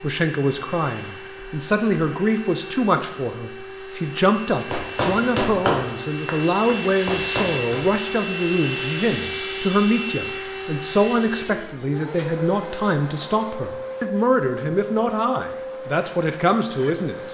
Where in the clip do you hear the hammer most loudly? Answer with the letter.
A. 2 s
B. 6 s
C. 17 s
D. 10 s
B.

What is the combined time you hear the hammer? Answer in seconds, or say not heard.
3 s.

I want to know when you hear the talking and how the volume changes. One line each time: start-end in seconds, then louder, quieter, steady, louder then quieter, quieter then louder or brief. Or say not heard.
0.0-17.2 steady.